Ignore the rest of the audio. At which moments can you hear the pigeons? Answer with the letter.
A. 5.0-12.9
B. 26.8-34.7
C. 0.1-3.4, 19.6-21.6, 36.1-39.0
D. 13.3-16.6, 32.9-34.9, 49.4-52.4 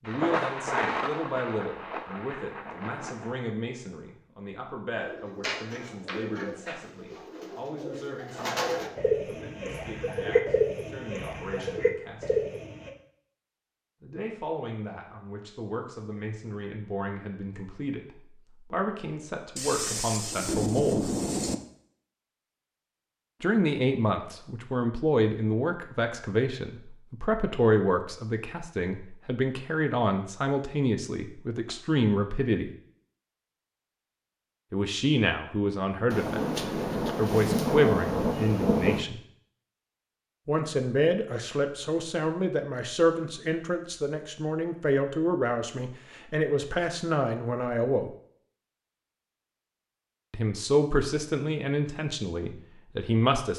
A.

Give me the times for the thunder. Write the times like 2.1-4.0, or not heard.
0.1-3.4, 19.6-21.6, 36.1-39.0.